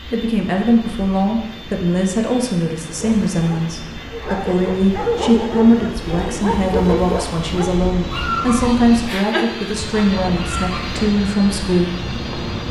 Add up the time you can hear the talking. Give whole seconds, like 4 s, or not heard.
12 s.